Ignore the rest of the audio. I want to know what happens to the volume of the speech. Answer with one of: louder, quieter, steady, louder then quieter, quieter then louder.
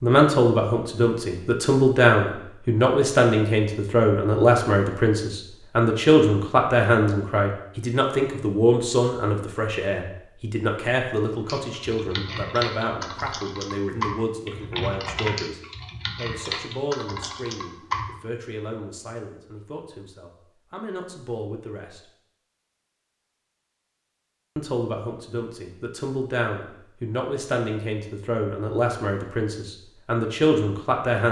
quieter then louder.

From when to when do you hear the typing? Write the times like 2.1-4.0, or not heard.
11.4-18.1.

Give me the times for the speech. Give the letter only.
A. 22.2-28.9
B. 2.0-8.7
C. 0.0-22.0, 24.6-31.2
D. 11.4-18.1
C.